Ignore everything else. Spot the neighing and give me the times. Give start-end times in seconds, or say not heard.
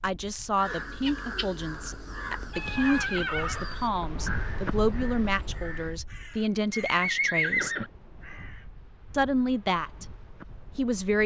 2.5-3.6, 6.7-7.9.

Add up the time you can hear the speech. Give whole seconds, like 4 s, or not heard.
9 s.